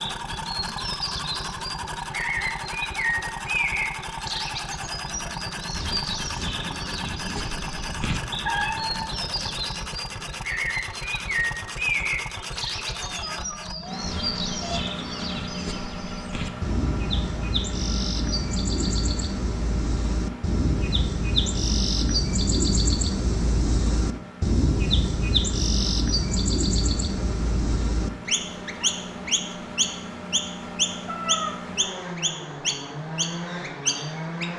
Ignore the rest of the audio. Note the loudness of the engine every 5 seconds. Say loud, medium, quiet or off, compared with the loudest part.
loud, loud, loud, loud, medium, medium, loud.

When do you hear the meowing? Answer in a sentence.
The meowing can be heard from 8.4 to 9.5 s, from 12.9 to 14.8 s and from 31.1 to 31.6 s.